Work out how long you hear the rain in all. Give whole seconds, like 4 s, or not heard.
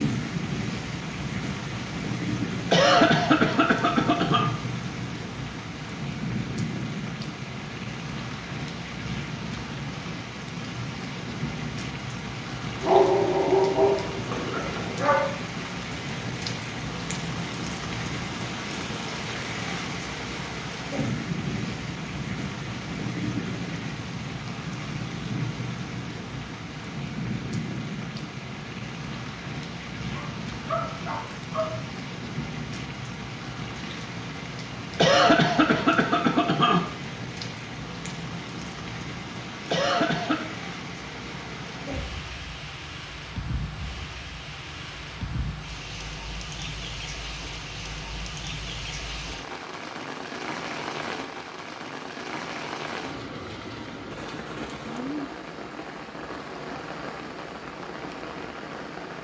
59 s.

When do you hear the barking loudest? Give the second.
13 s.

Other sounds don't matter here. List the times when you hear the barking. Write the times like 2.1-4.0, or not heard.
12.8-15.2, 30.1-31.8.